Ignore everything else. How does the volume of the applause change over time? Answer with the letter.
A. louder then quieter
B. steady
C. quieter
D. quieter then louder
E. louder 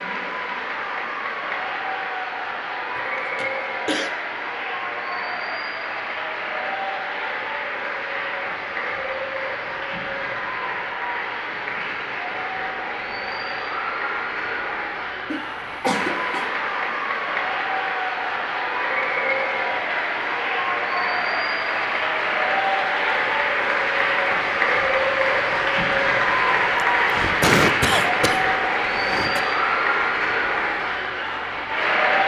E.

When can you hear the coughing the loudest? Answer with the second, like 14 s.
28 s.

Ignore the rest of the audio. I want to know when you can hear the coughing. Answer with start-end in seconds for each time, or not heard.
3.0-4.1, 15.3-16.5, 26.8-29.4.